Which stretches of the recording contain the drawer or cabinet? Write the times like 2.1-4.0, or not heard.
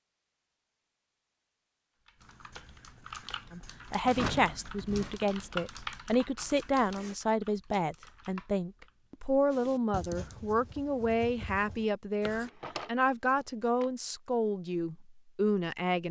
4.0-5.2, 12.4-13.8.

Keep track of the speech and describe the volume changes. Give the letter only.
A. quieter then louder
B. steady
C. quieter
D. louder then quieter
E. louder
B.